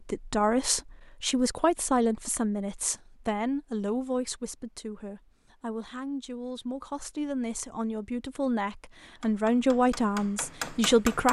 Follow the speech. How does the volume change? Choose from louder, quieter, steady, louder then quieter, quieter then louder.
quieter then louder.